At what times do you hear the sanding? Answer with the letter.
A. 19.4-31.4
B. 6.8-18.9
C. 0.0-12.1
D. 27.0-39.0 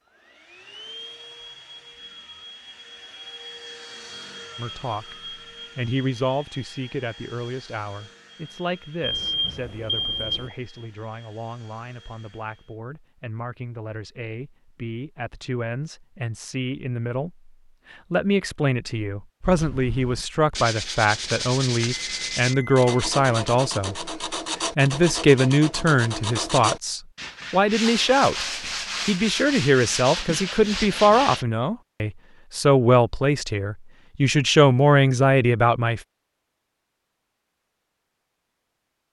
A.